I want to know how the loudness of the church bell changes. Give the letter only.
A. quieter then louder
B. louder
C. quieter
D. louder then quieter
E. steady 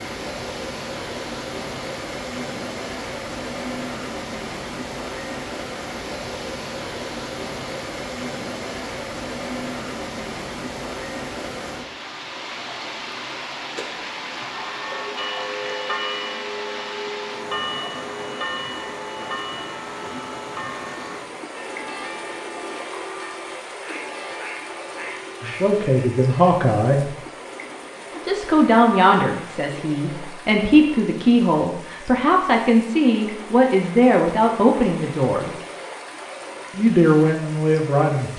C.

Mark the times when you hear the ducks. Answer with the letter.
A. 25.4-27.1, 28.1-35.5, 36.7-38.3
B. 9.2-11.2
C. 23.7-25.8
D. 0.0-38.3
C.